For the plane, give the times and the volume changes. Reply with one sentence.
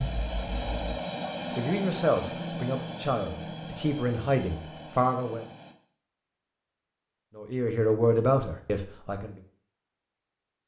The plane can be heard from 0.0 to 5.8 s, getting quieter.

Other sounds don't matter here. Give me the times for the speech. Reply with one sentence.
The speech can be heard from 1.6 to 5.5 s and from 7.3 to 9.3 s.